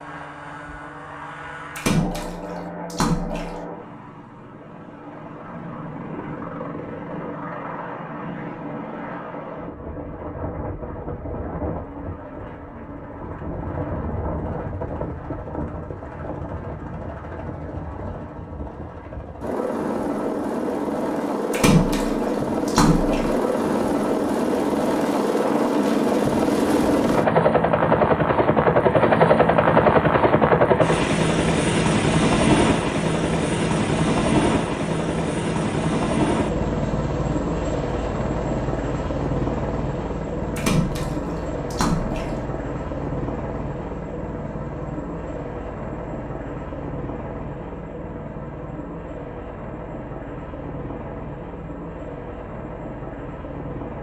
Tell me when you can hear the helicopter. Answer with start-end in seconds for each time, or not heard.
0.0-53.9.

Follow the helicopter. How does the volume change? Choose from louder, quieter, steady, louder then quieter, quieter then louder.
louder then quieter.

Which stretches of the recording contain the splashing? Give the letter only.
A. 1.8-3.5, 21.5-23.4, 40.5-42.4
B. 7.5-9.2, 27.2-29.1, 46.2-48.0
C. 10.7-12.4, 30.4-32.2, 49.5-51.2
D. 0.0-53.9
A.